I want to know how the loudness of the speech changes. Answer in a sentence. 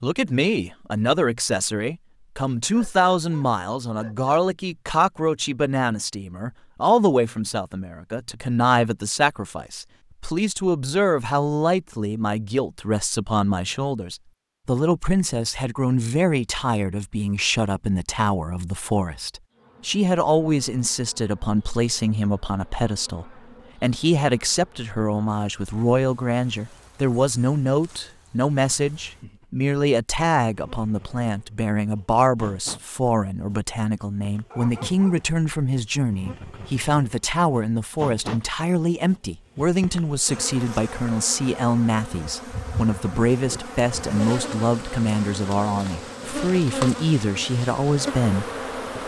The volume of the speech stays about the same.